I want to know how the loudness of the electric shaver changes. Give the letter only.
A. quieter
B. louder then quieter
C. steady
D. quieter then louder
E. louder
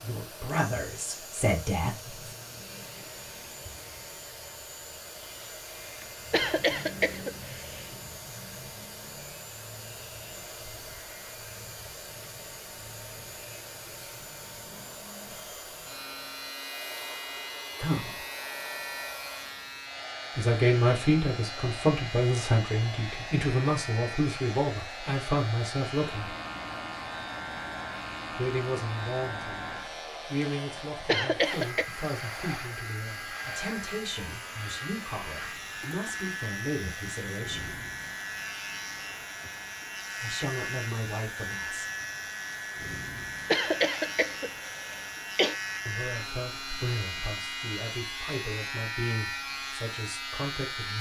E.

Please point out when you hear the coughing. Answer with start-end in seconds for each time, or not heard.
6.3-7.8, 31.1-31.9, 43.5-45.5.